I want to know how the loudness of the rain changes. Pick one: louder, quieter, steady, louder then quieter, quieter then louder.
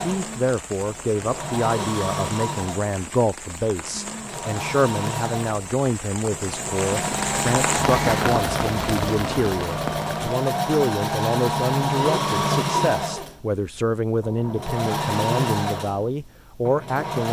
louder.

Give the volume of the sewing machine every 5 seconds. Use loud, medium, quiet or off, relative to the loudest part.
medium, loud, loud, loud.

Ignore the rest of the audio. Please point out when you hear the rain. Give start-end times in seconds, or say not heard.
0.0-10.3.